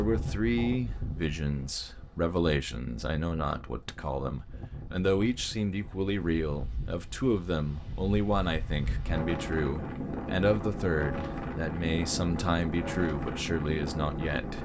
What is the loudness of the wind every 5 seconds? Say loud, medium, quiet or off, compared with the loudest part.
medium, medium, loud.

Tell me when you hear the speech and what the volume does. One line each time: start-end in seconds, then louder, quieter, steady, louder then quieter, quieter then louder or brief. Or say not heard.
0.0-14.6 steady.